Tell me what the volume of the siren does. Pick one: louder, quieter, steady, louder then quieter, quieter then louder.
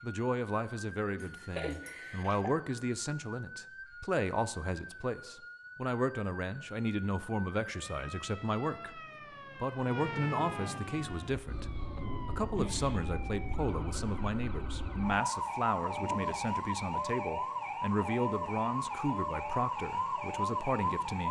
louder.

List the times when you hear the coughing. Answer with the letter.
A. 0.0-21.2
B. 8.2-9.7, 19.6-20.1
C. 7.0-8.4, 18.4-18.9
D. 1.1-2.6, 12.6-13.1
D.